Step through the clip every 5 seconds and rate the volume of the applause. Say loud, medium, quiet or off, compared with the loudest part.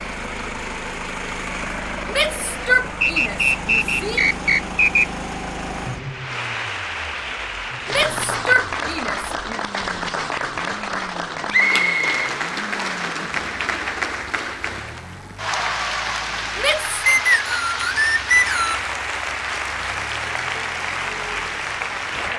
medium, loud, loud, loud, loud.